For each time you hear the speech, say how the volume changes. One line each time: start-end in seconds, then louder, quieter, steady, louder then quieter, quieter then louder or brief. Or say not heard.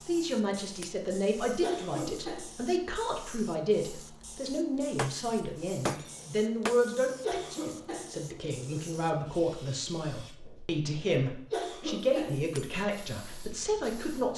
0.0-14.3 steady.